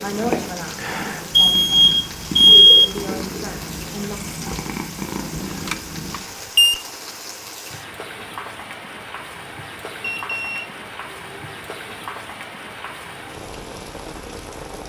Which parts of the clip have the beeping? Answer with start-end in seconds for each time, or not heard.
1.4-2.9, 5.5-6.8, 10.0-11.6.